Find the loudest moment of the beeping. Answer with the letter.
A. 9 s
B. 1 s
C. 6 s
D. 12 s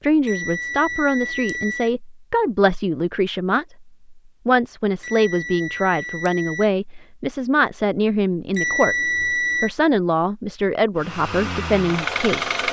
A.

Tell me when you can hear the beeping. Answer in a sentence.
You can hear the beeping from 0.2 to 1.9 s, from 5.0 to 6.7 s and from 8.5 to 9.7 s.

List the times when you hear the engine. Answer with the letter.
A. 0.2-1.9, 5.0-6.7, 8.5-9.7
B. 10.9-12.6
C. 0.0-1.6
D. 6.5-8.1
B.